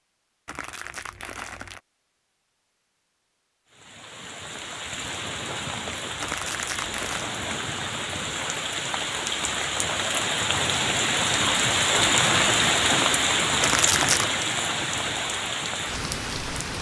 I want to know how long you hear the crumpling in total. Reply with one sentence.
The crumpling can be heard for 3 seconds in total.